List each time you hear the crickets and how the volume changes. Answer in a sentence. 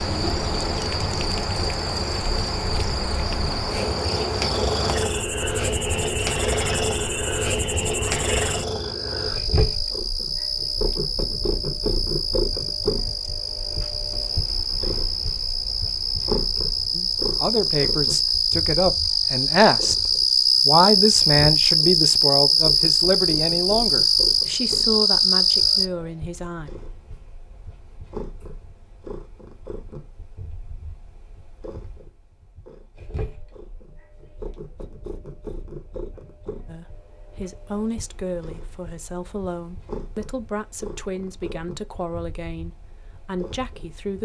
You can hear the crickets from 0.0 to 25.9 s, getting louder.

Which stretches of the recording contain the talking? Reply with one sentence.
The talking can be heard from 16.9 to 19.9 s, from 20.6 to 26.7 s and from 36.6 to 44.2 s.